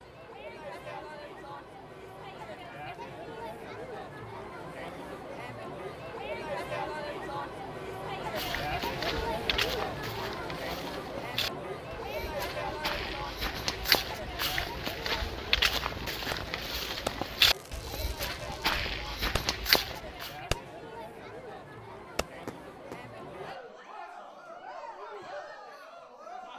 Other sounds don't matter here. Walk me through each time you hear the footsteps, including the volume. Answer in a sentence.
You can hear the footsteps from 8.3 to 20.4 s, getting louder.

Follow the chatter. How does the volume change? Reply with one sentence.
The volume of the chatter goes up, then down.